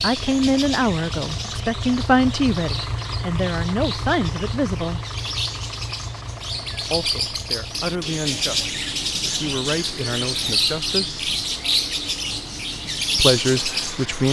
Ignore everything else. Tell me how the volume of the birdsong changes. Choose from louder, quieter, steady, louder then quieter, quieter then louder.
louder.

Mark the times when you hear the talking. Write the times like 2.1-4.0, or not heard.
0.0-5.0, 6.8-11.3, 13.2-14.2.